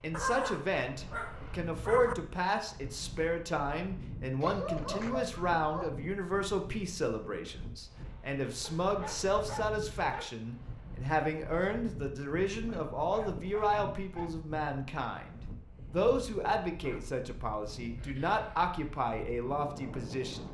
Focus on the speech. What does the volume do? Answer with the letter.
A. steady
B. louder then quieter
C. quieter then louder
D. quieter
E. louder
A.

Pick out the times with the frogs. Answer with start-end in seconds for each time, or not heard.
not heard.